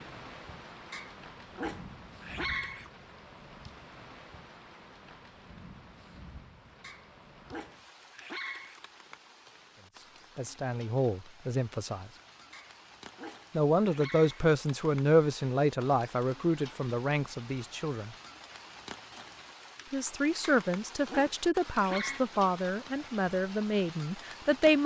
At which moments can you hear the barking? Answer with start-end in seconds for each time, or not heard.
0.9-2.9, 6.8-8.8, 12.5-14.5, 20.4-22.2.